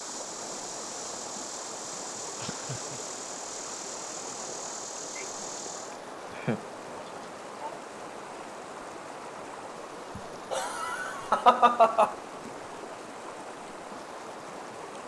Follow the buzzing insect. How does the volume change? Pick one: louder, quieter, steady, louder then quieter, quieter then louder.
steady.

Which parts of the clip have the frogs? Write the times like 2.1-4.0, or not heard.
not heard.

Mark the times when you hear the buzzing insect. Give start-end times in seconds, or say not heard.
0.0-6.0.